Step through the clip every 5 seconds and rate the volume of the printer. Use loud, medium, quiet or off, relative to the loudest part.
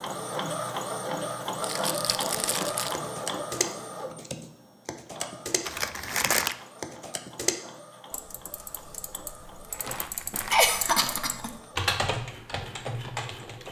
loud, quiet, quiet.